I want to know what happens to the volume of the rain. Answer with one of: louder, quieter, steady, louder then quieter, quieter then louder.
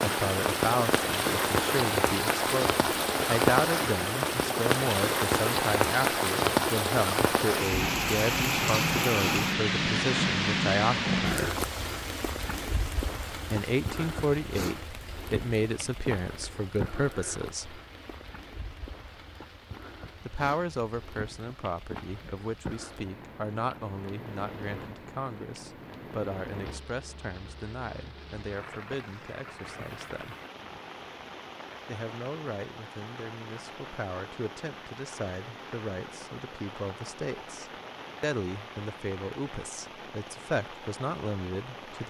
quieter.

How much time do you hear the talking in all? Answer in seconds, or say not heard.
36 s.